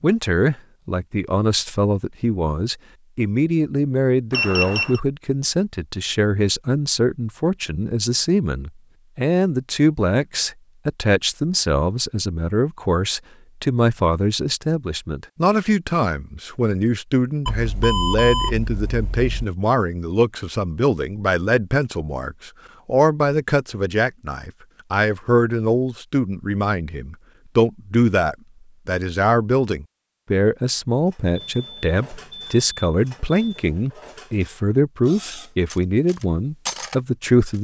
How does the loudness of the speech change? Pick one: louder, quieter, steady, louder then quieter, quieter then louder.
steady.